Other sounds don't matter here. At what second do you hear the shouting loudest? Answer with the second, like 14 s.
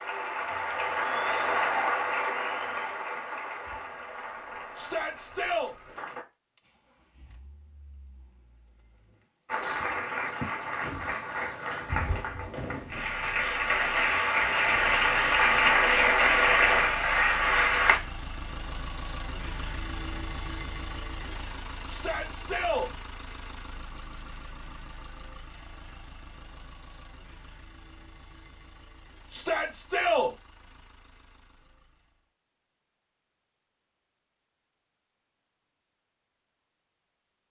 30 s.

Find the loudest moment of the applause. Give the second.
16 s.